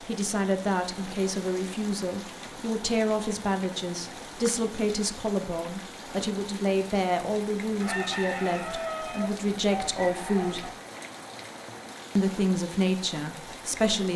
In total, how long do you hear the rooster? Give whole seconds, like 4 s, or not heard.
3 s.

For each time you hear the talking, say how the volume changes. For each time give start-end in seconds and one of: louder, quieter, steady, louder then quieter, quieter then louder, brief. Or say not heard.
0.0-10.7 steady
12.2-14.1 brief.